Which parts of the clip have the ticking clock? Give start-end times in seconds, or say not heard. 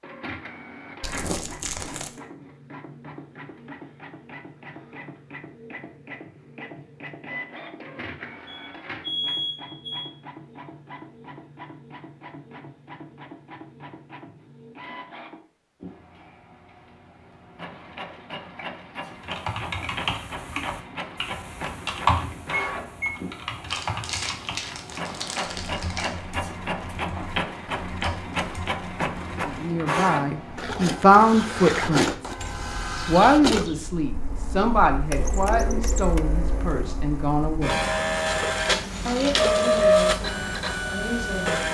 not heard.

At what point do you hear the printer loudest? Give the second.
40 s.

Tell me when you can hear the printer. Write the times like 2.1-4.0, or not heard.
0.0-41.6.